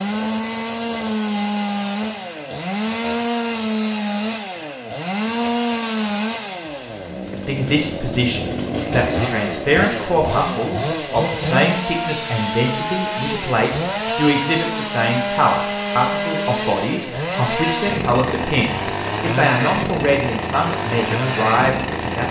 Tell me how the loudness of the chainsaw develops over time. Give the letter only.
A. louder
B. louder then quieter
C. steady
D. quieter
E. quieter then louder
C.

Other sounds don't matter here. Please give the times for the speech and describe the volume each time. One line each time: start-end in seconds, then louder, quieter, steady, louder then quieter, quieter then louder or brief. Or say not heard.
7.3-22.2 steady.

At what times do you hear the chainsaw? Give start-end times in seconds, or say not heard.
0.0-22.2.